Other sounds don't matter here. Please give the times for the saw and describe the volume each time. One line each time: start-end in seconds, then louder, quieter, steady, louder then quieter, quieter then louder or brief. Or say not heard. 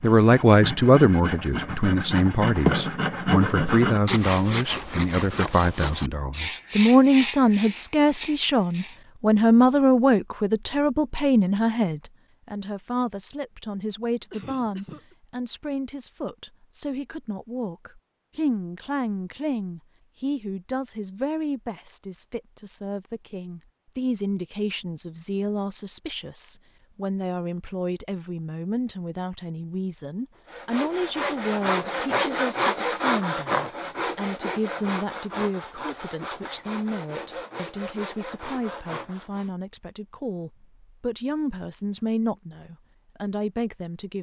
0.0-9.0 louder then quieter
30.4-39.5 quieter.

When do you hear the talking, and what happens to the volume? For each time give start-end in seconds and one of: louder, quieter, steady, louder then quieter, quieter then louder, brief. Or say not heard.
0.0-44.1 quieter.